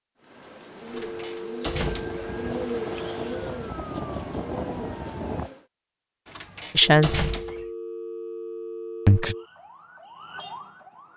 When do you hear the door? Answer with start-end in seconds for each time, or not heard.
0.8-2.2, 6.2-7.7.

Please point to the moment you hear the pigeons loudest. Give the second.
3 s.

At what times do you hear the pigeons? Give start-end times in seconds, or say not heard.
0.1-5.7.